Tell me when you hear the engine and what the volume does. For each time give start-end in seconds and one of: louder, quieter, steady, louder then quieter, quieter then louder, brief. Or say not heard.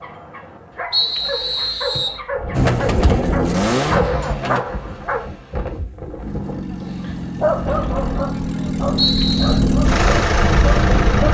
2.5-4.7 brief
6.2-11.3 louder.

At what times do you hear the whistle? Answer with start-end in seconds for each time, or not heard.
0.9-2.2, 8.9-9.6.